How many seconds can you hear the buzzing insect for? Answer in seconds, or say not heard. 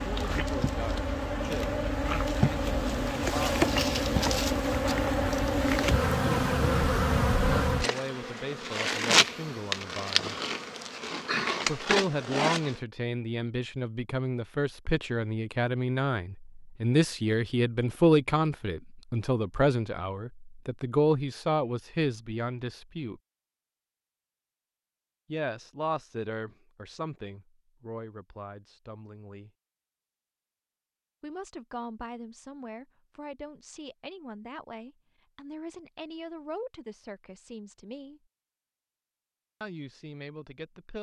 13 s.